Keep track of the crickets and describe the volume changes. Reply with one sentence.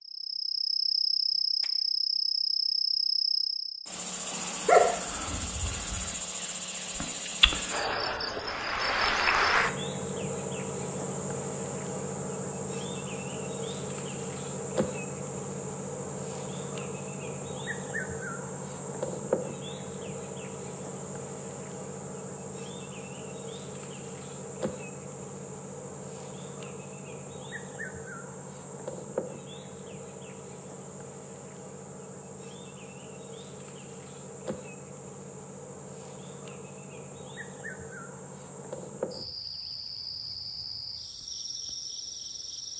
The loudness of the crickets goes down.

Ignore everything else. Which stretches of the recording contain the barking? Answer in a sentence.
You can hear the barking from 4.7 to 6.0 s.